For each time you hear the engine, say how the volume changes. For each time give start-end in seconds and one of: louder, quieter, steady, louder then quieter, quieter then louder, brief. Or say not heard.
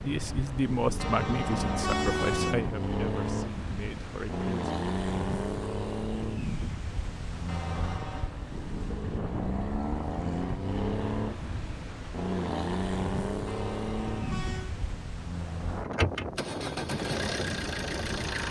0.0-18.4 steady.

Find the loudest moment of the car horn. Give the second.
2 s.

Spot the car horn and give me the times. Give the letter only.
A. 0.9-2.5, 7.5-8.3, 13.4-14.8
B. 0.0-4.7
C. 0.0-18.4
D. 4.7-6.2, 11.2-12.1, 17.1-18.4
A.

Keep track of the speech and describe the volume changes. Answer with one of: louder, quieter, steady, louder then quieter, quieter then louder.
quieter.